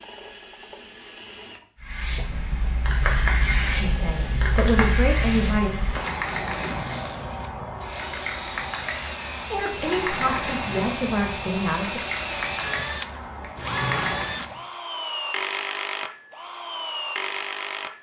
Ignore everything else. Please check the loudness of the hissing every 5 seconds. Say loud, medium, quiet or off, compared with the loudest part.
loud, loud, loud, off.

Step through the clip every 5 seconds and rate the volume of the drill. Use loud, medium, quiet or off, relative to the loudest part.
medium, medium, loud, loud.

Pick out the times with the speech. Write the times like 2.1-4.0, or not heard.
3.8-5.7, 9.5-12.0.